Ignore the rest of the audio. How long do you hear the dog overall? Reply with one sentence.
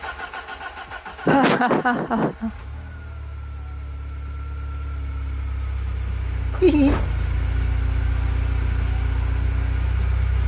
The dog can't be heard in this clip.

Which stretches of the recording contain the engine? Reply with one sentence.
You can hear the engine from 0.0 to 10.4 s.